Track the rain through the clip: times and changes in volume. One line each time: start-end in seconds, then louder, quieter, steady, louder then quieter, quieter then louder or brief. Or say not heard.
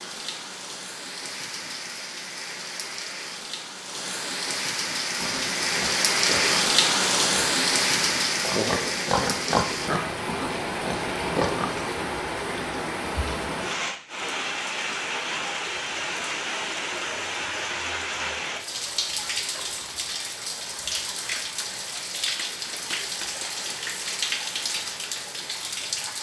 0.0-26.1 louder then quieter.